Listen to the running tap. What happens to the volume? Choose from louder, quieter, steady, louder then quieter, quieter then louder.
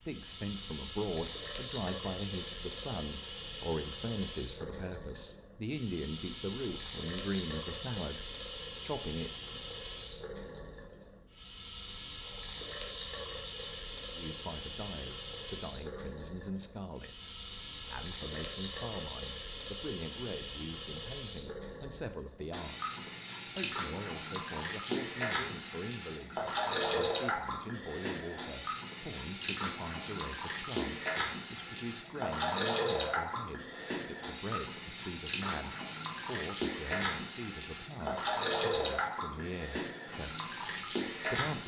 steady.